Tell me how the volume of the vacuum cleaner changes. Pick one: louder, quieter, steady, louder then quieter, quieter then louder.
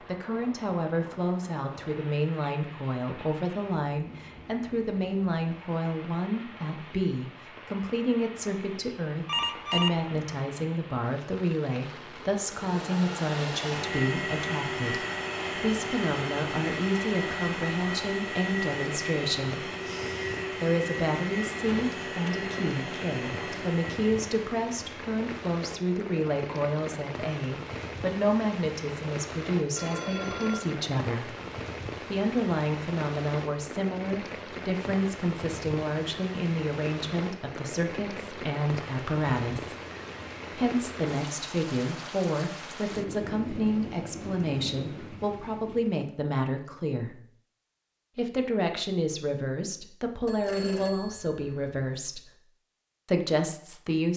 steady.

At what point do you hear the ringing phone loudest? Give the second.
10 s.